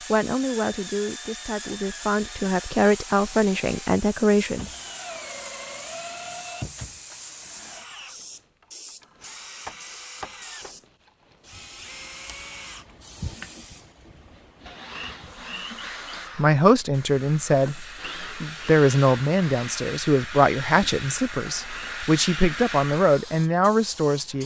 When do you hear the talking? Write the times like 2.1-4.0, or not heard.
0.1-4.7, 16.4-24.4.